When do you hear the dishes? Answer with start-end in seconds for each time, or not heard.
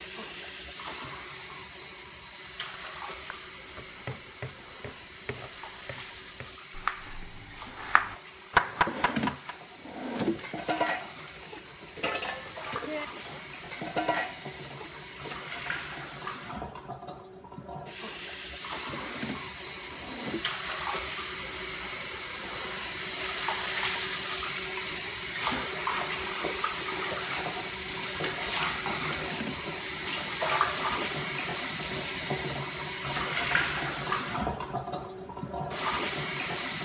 10.4-15.3.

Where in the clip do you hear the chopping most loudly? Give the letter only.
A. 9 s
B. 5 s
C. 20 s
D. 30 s
A.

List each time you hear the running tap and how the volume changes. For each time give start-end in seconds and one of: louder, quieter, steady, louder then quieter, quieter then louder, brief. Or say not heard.
0.0-36.7 louder.